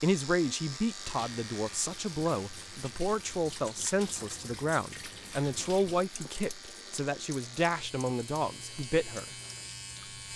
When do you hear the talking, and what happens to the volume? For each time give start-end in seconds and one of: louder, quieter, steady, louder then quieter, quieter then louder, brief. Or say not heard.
0.0-9.3 steady.